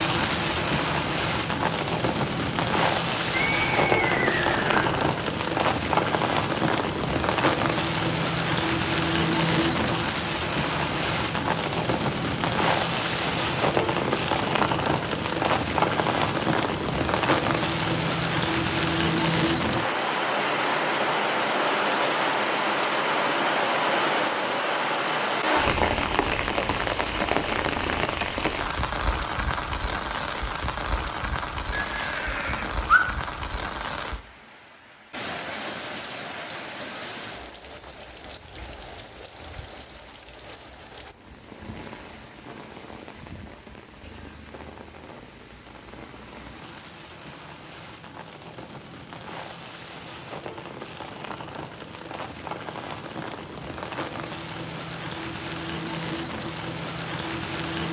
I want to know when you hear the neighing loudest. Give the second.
33 s.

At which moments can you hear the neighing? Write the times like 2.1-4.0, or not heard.
3.3-5.1, 31.7-33.0.